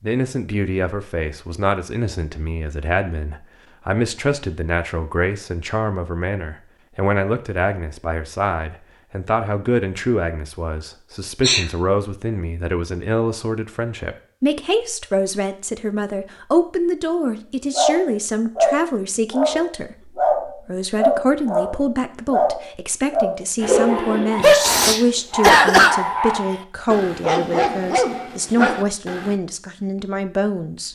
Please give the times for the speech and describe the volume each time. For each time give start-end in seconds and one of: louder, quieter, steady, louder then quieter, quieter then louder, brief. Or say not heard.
0.0-30.8 steady.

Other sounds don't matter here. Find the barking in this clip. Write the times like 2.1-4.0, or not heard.
17.8-29.4.